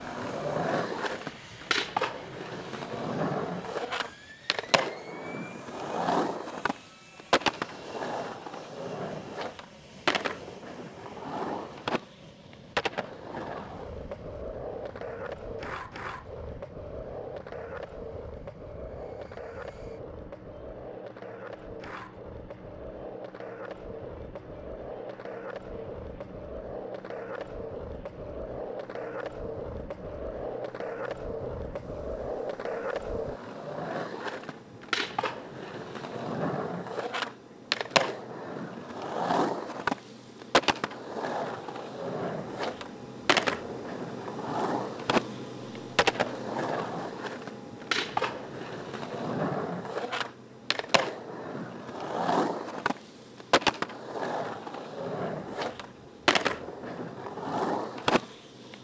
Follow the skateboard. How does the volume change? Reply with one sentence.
The volume of the skateboard goes down, then up.